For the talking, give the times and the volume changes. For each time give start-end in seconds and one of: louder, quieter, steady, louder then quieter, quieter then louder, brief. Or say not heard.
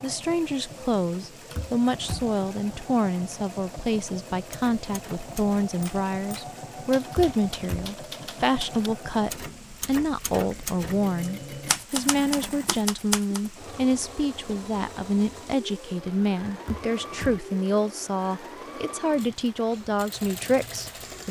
0.0-21.2 steady.